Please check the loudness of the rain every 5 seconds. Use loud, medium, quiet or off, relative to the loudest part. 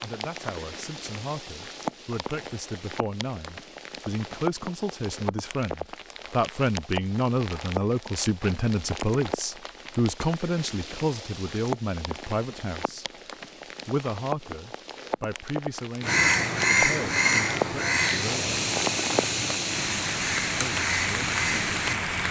medium, medium, medium, loud, loud.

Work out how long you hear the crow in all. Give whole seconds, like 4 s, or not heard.
6 s.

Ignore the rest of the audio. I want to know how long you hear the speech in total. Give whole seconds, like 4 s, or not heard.
19 s.